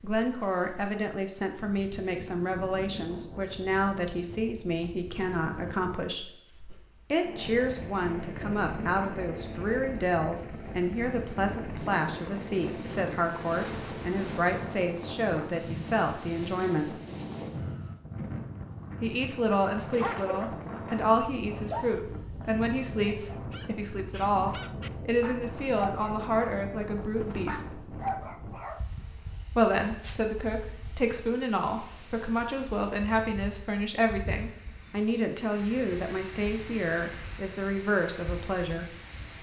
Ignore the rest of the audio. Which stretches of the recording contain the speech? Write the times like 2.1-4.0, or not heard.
0.0-6.3, 7.1-16.9, 19.0-27.6, 29.6-39.0.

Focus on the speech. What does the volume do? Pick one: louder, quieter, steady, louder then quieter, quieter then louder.
steady.